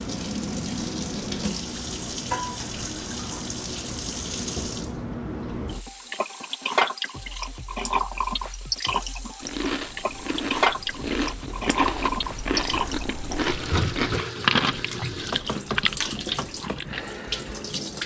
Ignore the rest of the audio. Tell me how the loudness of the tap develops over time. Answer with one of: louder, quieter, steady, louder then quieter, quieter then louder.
steady.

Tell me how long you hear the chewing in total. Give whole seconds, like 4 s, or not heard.
8 s.